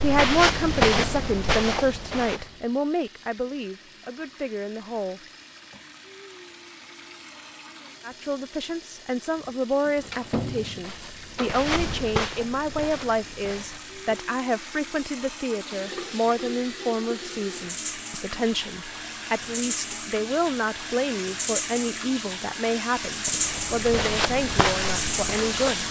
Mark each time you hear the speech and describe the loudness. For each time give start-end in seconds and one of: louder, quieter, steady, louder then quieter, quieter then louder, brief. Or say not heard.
0.0-5.2 quieter
8.0-25.8 steady.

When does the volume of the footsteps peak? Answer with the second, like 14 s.
1 s.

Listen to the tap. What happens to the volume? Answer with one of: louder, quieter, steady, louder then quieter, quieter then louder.
louder.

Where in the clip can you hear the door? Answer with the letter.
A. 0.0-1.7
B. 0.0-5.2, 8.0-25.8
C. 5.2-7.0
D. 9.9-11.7
D.